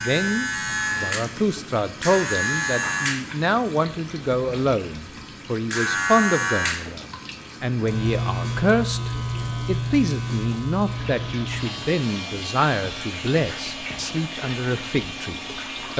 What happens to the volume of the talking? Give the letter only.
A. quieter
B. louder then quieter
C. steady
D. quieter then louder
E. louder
C.